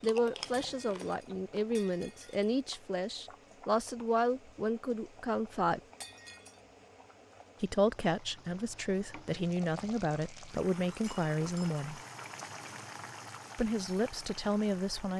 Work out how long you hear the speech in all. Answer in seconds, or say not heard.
12 s.